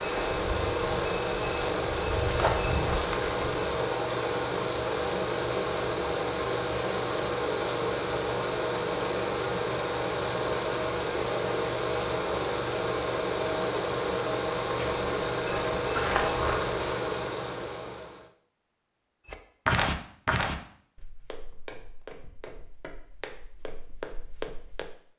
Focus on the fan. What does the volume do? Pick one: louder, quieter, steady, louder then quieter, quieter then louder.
steady.